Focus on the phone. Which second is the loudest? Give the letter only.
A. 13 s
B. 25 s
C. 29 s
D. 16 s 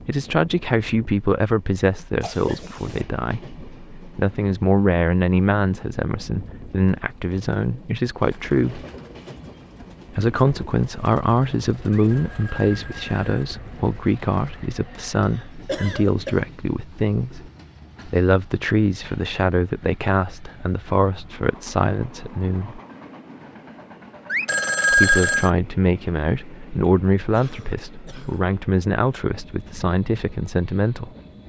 B.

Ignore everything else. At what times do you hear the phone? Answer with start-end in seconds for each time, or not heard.
12.1-13.5, 24.3-25.5.